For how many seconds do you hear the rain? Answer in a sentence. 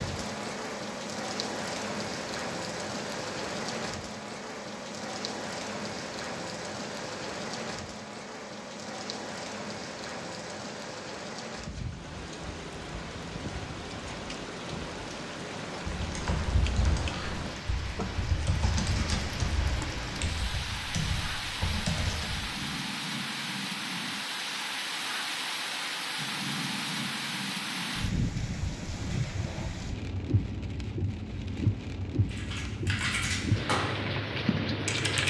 You can hear the rain for 35 seconds altogether.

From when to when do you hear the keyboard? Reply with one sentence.
The keyboard can be heard from 15.9 to 22.5 s and from 32.3 to 35.2 s.